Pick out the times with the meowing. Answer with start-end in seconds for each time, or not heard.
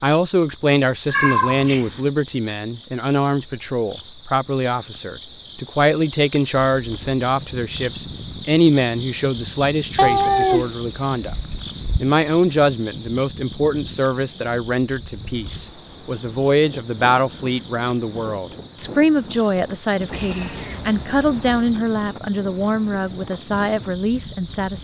1.1-2.0, 9.9-12.0, 20.1-21.8.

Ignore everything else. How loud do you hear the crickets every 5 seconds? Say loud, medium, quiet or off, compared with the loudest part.
medium, loud, loud, medium, medium.